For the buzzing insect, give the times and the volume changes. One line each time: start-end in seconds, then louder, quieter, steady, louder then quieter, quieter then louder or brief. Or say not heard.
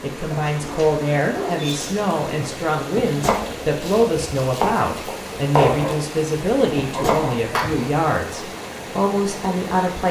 not heard.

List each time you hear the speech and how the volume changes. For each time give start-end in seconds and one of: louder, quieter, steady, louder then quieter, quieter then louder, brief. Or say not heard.
0.0-10.0 steady.